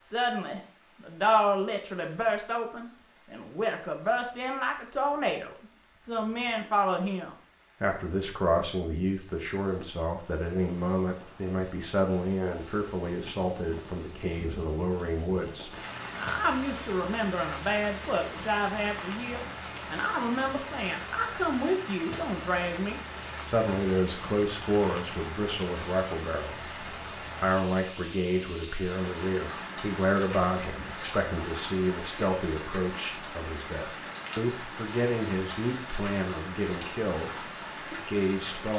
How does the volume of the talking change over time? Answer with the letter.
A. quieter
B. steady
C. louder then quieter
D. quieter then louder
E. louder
B.